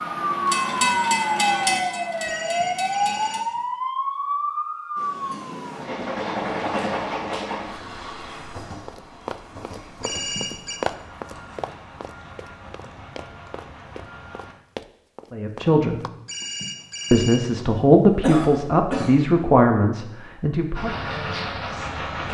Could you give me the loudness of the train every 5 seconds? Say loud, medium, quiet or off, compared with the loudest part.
loud, loud, quiet, off, loud.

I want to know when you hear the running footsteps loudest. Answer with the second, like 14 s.
11 s.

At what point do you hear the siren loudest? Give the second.
1 s.